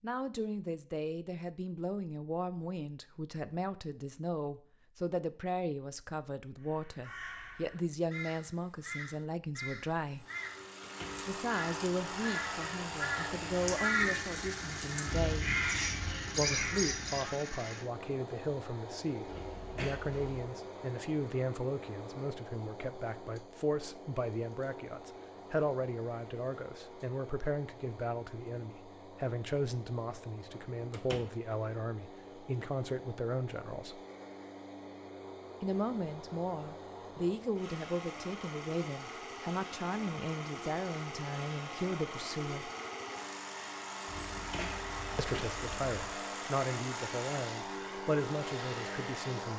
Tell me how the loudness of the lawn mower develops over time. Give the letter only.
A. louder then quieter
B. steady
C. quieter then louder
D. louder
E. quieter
C.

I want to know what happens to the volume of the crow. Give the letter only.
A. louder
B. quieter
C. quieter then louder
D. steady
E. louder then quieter
A.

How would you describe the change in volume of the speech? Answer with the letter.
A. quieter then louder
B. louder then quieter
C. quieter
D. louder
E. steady
E.